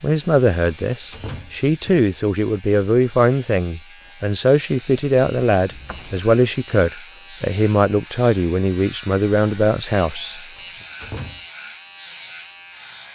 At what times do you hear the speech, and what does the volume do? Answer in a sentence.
You can hear the speech from 0.0 to 10.4 s, at a steady volume.